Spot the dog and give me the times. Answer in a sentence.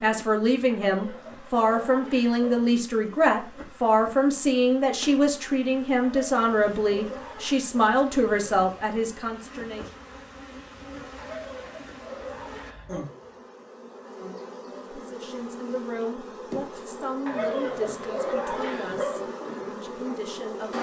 The dog can be heard from 0.7 to 2.7 s, from 6.0 to 7.7 s, from 11.2 to 13.1 s and from 17.2 to 19.2 s.